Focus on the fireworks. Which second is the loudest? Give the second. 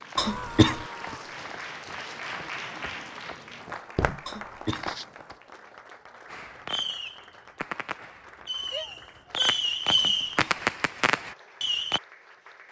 10 s.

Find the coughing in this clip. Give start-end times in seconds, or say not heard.
0.1-0.8, 4.2-4.9, 9.9-10.7.